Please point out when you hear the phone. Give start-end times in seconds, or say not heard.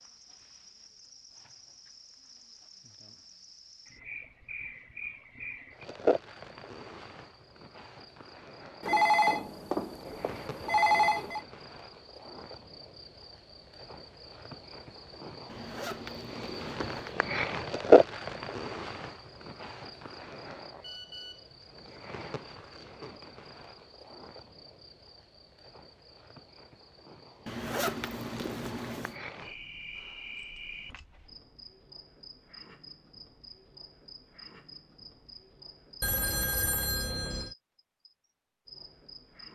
8.8-11.4, 20.8-21.4, 36.0-37.5.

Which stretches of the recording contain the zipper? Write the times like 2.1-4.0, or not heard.
15.4-17.1, 27.4-29.1.